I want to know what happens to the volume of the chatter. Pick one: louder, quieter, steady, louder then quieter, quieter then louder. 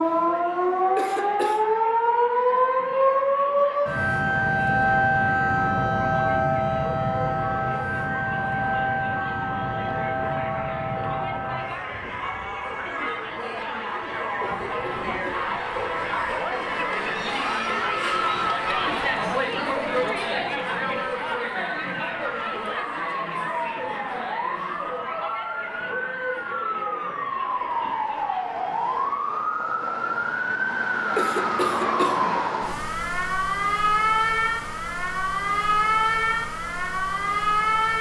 louder then quieter.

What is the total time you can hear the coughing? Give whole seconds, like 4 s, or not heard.
3 s.